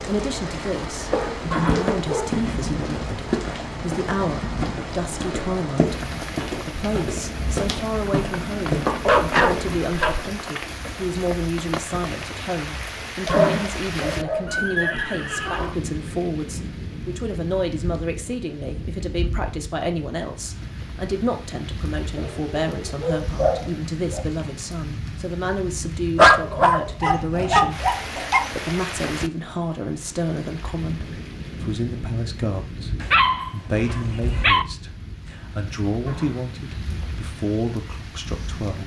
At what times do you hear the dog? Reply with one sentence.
You can hear the dog from 1.1 to 2.4 s, from 9.0 to 10.6 s, from 13.2 to 14.9 s, from 22.1 to 24.2 s, from 26.1 to 28.5 s and from 33.0 to 34.6 s.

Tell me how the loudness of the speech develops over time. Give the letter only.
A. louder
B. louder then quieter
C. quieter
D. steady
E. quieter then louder
D.